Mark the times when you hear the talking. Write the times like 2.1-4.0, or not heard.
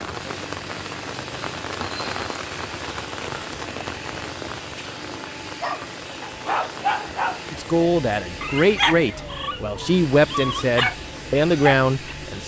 7.5-12.4.